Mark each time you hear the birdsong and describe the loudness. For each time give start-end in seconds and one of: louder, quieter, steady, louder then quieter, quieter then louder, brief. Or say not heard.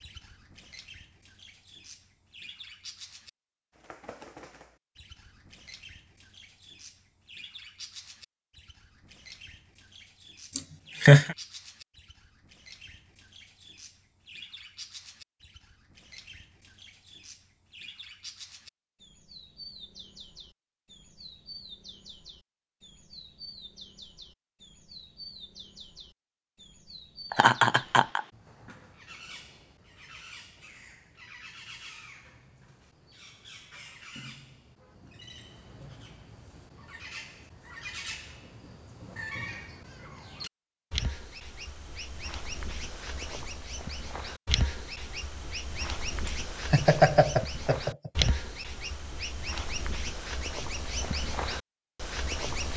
0.0-52.7 louder.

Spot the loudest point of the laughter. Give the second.
11 s.